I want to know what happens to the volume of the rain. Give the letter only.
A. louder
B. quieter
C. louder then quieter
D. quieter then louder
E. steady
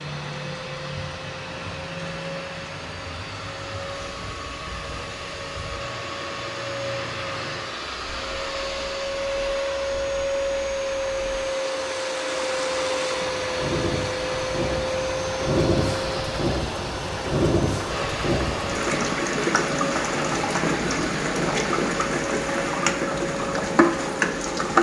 A.